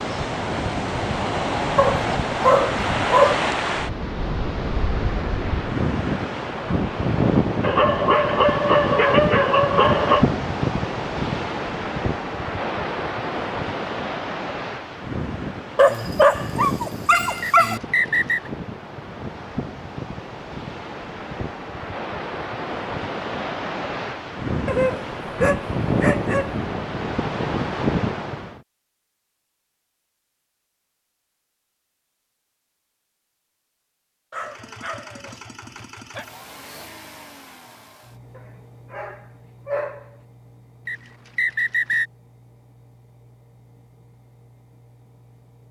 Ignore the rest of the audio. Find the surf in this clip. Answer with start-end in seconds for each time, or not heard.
0.0-28.6.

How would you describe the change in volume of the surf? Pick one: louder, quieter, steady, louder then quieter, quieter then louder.
quieter then louder.